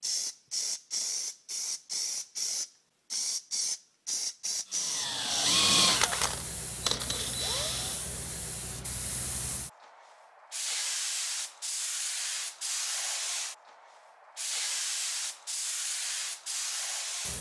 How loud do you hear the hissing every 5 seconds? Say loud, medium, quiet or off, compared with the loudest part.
loud, medium, loud, loud.